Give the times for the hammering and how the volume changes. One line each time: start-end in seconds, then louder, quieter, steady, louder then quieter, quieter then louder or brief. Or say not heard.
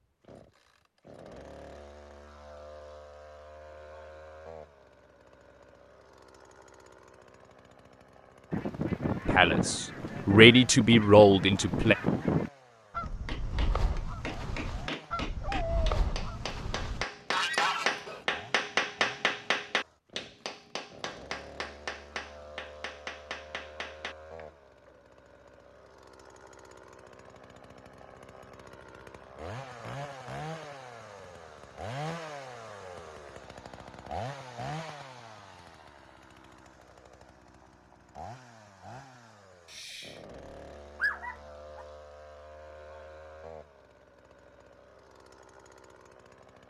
13.2-25.0 louder then quieter.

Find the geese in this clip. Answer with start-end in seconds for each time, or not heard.
8.5-18.2.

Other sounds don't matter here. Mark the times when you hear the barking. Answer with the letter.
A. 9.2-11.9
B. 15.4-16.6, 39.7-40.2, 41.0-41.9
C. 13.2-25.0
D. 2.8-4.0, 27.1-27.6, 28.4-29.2
B.